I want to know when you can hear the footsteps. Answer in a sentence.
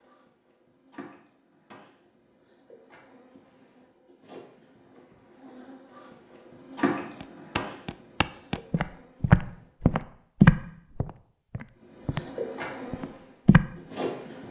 The footsteps can be heard from 7.2 to 12.3 s and from 12.9 to 13.7 s.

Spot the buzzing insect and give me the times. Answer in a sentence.
You can hear the buzzing insect from 0.0 to 9.8 s and from 11.8 to 14.4 s.